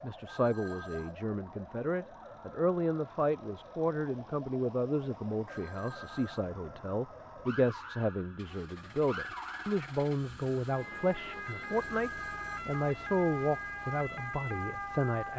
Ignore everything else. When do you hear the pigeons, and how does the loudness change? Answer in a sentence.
You can't hear the pigeons here.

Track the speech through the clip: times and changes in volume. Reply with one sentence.
The speech can be heard from 0.0 to 15.3 s, at a steady volume.